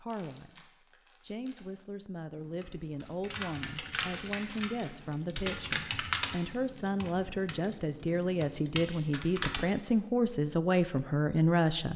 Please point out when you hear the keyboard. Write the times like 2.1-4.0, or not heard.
2.4-9.7.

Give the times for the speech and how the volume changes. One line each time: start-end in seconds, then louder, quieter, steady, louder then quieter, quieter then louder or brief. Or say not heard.
0.0-11.9 louder.